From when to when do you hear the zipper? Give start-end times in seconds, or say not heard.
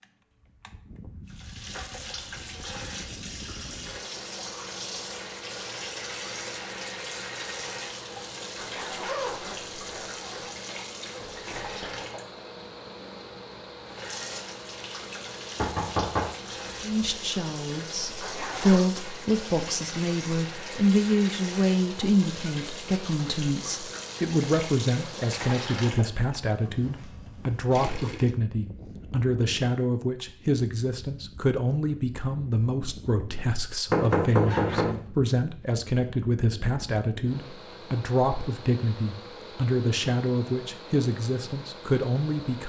8.6-10.5, 18.2-18.9, 34.4-34.9.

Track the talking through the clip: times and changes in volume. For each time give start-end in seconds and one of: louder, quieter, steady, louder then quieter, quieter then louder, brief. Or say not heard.
16.8-42.6 steady.